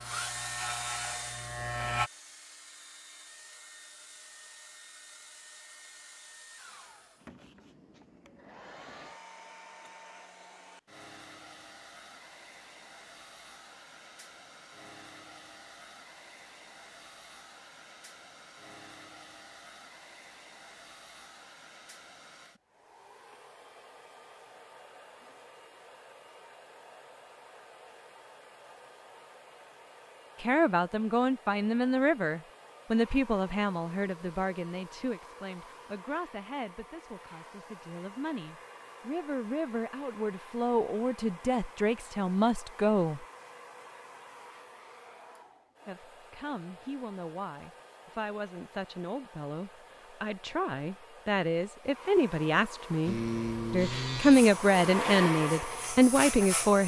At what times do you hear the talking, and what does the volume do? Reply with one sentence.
The talking can be heard from 30.4 to 43.2 s, getting quieter then louder; and from 45.9 to 56.8 s, getting louder.